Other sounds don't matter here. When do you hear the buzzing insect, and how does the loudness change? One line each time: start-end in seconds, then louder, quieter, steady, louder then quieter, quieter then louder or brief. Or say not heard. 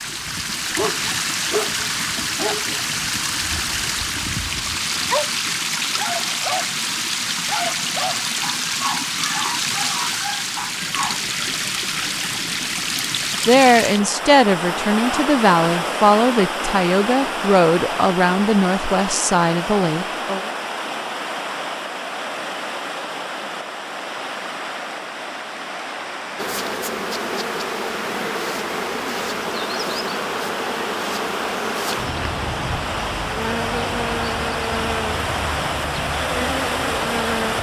26.4-37.5 steady.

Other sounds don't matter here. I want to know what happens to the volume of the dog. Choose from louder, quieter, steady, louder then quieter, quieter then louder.
quieter then louder.